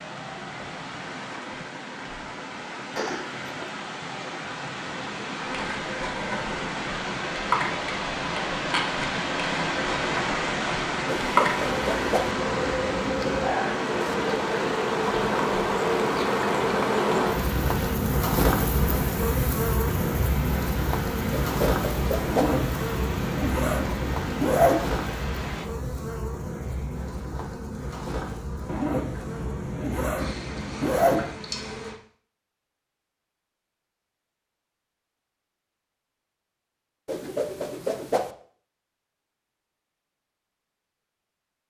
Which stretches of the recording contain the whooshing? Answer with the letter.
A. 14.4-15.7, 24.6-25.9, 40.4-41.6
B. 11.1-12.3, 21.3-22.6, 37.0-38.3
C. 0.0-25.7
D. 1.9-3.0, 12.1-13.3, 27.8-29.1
B.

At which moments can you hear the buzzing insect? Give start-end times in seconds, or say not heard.
5.3-31.9.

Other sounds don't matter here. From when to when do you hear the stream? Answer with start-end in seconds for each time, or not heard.
0.0-25.7.